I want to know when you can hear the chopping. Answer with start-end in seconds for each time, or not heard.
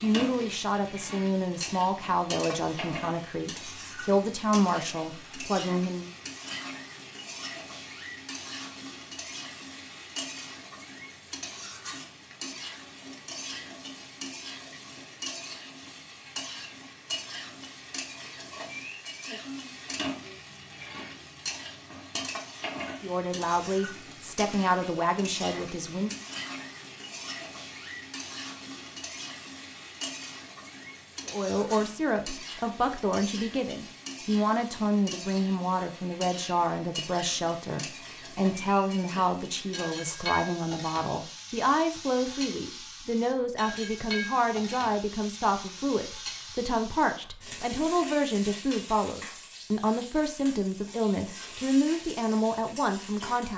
not heard.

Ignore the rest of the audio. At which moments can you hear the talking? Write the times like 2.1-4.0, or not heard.
0.0-6.1, 23.0-26.1, 31.2-53.5.